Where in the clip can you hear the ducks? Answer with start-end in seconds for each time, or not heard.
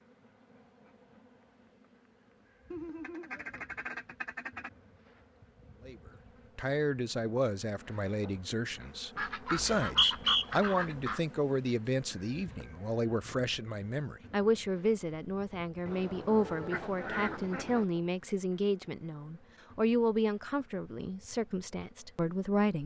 2.7-4.7, 9.2-11.2, 15.8-17.9.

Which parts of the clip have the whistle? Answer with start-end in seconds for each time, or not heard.
9.6-10.4.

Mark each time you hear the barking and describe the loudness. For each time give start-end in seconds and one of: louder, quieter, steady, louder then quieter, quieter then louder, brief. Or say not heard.
not heard.